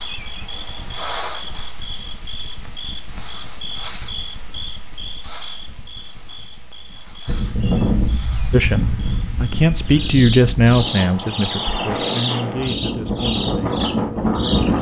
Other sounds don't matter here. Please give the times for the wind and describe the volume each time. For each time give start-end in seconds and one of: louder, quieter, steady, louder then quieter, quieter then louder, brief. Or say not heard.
7.2-14.7 quieter then louder.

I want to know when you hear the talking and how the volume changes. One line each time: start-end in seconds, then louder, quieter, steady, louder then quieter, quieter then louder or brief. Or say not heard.
8.5-14.7 quieter.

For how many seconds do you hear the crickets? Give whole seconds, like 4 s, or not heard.
15 s.